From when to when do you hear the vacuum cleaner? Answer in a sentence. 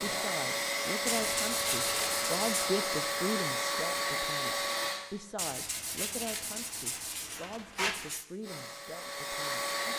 You can hear the vacuum cleaner from 0.0 to 5.0 s and from 8.4 to 9.9 s.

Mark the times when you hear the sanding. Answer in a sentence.
The sanding can be heard from 1.1 to 2.7 s and from 5.3 to 8.2 s.